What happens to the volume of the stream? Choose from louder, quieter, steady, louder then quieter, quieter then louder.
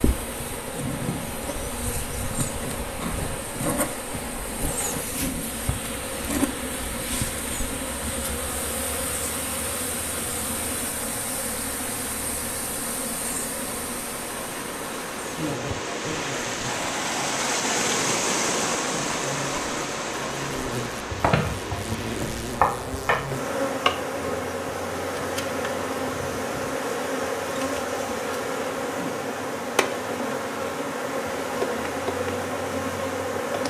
louder then quieter.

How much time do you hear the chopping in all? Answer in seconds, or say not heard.
2 s.